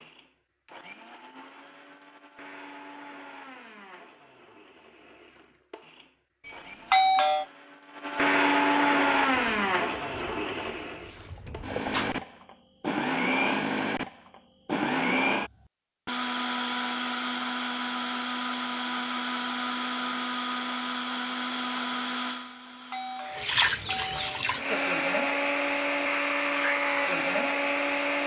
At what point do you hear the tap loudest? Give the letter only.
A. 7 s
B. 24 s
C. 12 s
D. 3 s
B.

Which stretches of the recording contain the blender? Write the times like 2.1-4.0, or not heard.
0.0-28.2.